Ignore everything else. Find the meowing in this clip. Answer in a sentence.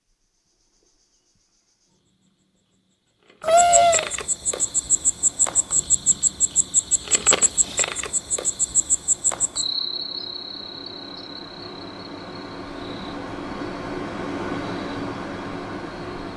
You can hear the meowing from 3.4 to 4.1 s.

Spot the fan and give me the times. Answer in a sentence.
The fan can be heard from 4.5 to 16.3 s.